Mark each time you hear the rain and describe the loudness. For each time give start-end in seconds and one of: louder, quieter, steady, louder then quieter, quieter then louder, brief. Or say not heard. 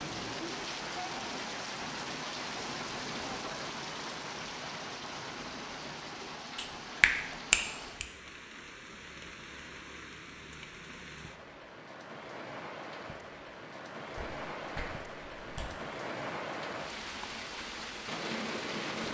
0.0-19.0 quieter then louder.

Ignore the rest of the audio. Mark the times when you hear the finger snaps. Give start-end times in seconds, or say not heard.
6.5-8.1, 14.2-15.7.